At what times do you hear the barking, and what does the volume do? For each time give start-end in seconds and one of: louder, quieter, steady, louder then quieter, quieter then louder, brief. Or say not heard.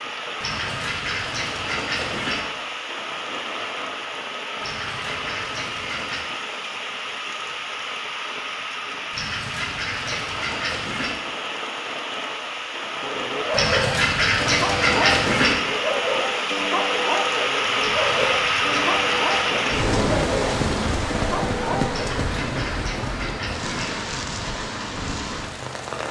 13.0-22.1 steady.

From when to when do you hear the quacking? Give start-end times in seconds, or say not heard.
0.4-2.4, 4.6-6.2, 9.1-11.2, 13.5-15.6, 17.8-19.8, 21.9-23.9.